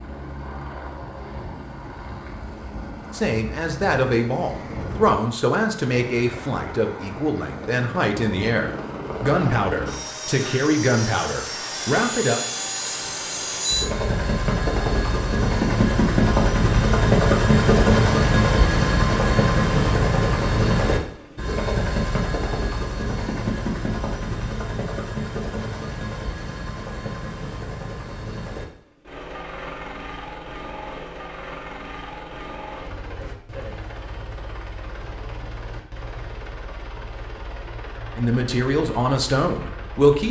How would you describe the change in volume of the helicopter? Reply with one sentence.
The loudness of the helicopter goes up, then down.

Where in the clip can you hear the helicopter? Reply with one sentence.
You can hear the helicopter from 0.0 to 40.2 s.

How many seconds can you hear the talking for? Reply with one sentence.
You can hear the talking for 11 seconds altogether.